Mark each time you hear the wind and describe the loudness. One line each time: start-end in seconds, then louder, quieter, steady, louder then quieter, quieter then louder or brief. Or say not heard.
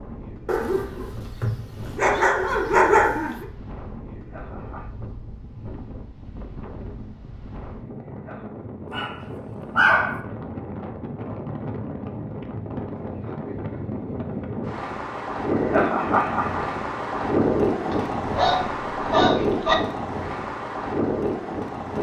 0.0-21.9 louder.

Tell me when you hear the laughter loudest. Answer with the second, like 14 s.
16 s.